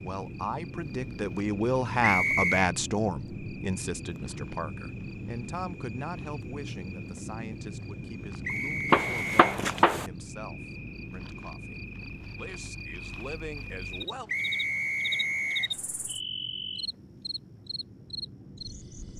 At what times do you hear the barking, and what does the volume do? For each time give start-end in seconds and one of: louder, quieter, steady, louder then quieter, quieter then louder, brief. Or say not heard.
not heard.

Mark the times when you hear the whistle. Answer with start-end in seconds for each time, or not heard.
2.0-2.7, 8.4-9.6, 14.2-15.8.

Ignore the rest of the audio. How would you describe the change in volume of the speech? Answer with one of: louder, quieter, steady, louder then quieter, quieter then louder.
quieter.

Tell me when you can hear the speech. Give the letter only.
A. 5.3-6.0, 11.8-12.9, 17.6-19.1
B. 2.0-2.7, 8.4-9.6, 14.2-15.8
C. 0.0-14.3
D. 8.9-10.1
C.